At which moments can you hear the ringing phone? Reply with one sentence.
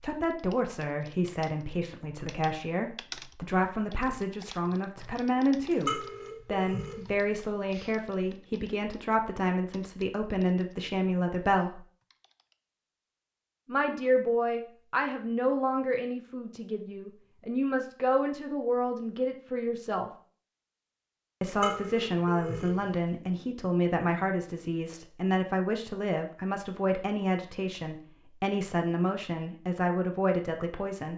You can hear the ringing phone from 5.7 to 8.3 s and from 21.4 to 23.0 s.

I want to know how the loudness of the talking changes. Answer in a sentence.
The loudness of the talking stays about the same.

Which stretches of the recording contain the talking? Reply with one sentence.
The talking can be heard from 0.0 to 11.8 s, from 13.7 to 20.1 s and from 21.4 to 31.1 s.